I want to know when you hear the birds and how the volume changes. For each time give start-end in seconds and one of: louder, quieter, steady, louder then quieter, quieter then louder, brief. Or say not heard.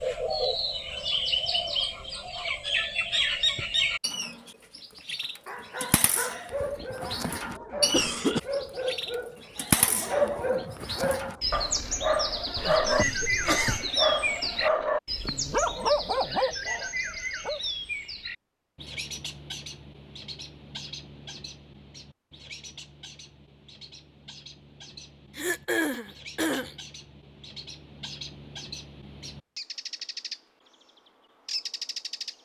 0.0-30.4 quieter
31.4-32.4 brief.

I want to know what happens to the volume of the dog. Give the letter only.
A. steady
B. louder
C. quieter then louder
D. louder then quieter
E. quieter
B.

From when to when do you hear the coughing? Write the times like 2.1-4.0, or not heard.
7.6-8.4, 12.6-13.9, 25.4-26.8.